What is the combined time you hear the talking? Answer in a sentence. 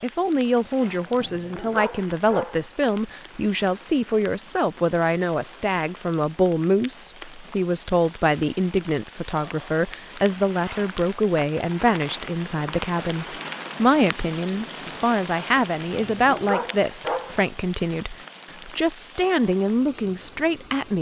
You can hear the talking for 21 seconds altogether.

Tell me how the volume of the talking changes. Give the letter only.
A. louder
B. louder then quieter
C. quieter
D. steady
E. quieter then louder
D.